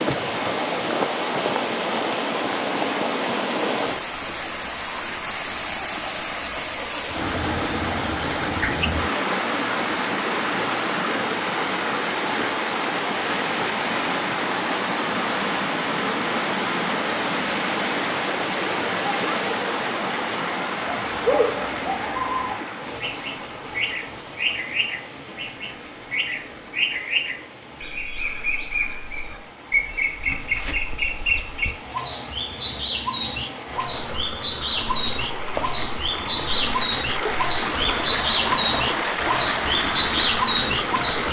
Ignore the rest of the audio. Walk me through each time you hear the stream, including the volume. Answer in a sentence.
You can hear the stream from 0.0 to 41.2 s, getting quieter then louder.